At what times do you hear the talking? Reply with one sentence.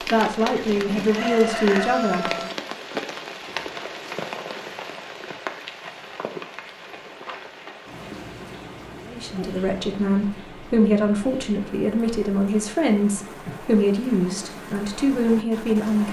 The talking can be heard from 0.0 to 2.2 s and from 9.1 to 16.0 s.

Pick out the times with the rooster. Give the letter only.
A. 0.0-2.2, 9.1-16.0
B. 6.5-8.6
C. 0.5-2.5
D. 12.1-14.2
C.